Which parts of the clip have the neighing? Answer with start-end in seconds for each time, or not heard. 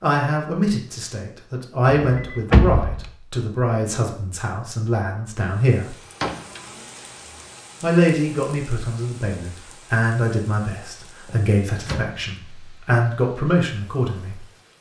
not heard.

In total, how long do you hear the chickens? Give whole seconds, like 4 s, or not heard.
not heard.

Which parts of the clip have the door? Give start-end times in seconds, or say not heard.
1.9-3.1, 6.2-7.0, 11.2-12.2.